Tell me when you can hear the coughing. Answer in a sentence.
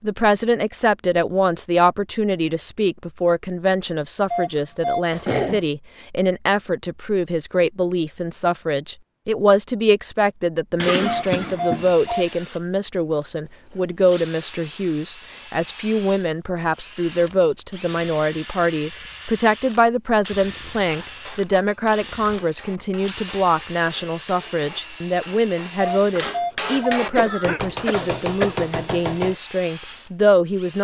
The coughing can be heard from 5.1 to 5.7 s, from 10.8 to 11.9 s and from 27.1 to 28.6 s.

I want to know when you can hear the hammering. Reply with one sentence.
The hammering can be heard from 20.9 to 29.4 s.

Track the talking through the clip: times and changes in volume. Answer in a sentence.
The talking can be heard from 0.0 to 30.7 s, at a steady volume.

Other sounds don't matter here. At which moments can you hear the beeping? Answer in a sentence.
You can hear the beeping from 4.3 to 5.0 s, from 11.1 to 12.2 s and from 25.8 to 27.0 s.